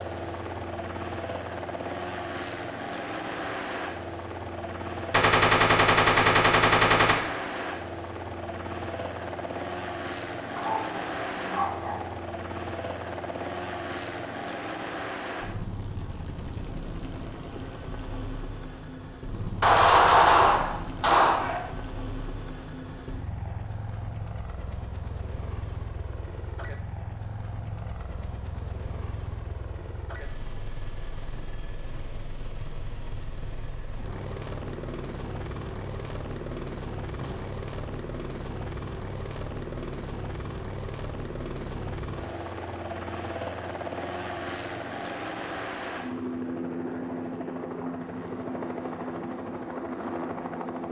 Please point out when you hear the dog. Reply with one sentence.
The dog can be heard from 10.6 to 12.1 s.